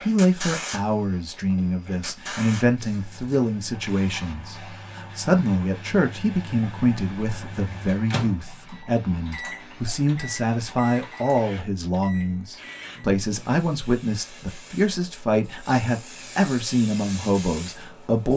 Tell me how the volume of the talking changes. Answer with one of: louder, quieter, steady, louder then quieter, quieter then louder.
steady.